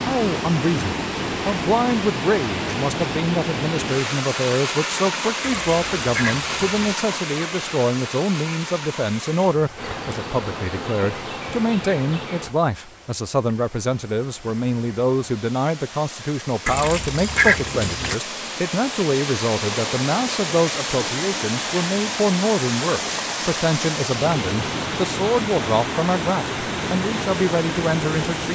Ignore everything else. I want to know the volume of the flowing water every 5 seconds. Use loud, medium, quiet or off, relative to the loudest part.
loud, loud, quiet, medium, loud, loud.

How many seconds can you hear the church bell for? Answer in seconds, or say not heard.
not heard.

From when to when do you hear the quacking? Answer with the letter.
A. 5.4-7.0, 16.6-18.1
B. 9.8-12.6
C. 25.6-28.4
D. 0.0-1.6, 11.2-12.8
A.